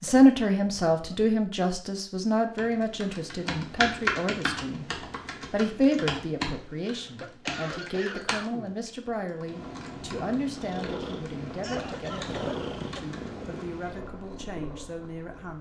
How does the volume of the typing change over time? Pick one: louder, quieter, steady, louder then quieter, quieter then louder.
quieter.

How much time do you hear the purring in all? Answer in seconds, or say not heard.
6 s.